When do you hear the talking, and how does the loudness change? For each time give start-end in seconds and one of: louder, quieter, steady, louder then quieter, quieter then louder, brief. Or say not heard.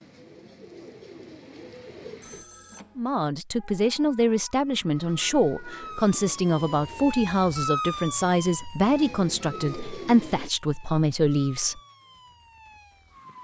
3.0-11.8 steady.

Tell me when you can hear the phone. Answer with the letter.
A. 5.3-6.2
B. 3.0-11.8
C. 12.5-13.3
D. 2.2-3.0
D.